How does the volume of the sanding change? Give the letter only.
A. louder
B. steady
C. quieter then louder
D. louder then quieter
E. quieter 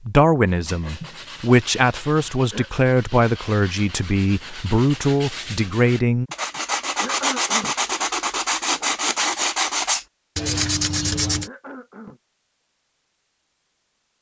A.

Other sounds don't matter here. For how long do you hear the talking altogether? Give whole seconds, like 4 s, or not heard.
6 s.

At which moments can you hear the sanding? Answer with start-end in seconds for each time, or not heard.
0.5-11.5.